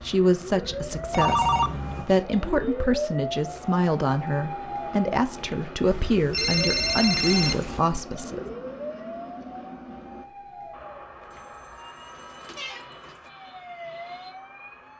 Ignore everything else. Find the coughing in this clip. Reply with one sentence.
The coughing can't be heard in this clip.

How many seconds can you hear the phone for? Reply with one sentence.
The phone can be heard for 5 seconds in total.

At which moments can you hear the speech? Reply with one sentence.
You can hear the speech from 0.0 to 8.4 s.